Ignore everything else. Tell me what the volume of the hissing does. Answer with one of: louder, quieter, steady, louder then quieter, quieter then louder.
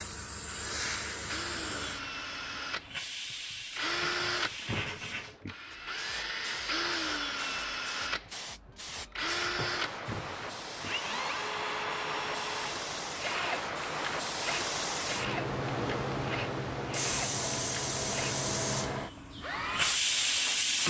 louder.